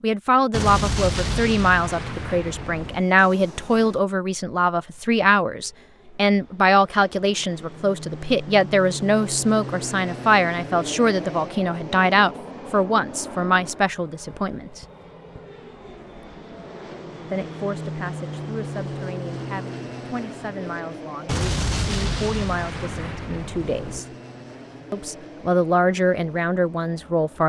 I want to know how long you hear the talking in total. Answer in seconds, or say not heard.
24 s.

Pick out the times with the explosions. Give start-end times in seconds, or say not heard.
0.5-3.0, 21.2-24.0.